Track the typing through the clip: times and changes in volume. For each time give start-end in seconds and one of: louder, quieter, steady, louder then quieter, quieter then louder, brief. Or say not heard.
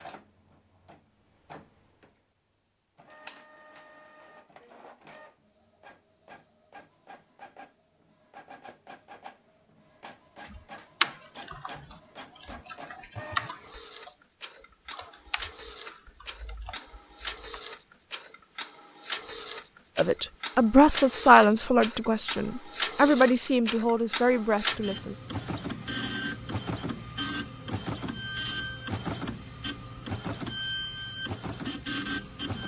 10.4-17.6 quieter.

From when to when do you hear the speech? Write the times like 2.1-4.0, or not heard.
19.9-25.1.